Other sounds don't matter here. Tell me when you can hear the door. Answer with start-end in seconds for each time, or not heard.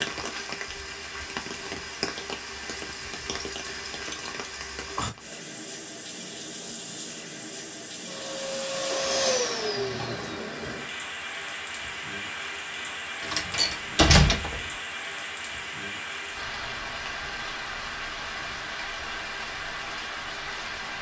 13.2-14.7.